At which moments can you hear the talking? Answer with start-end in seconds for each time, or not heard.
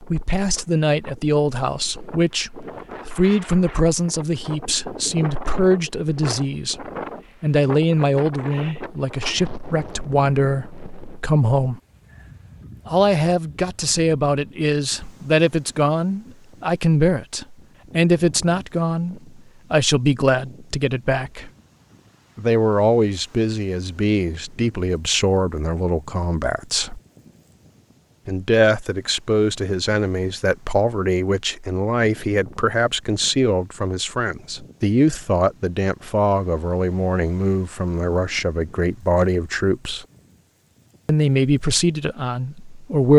0.0-11.8, 12.8-21.5, 22.4-27.0, 28.2-40.0, 41.0-43.1.